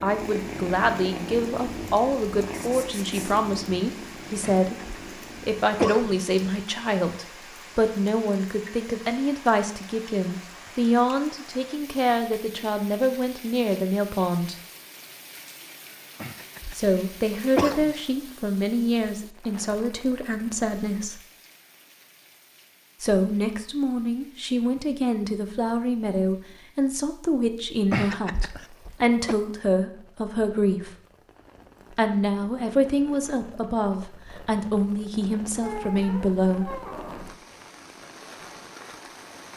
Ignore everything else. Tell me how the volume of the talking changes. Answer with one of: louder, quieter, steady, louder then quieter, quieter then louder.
steady.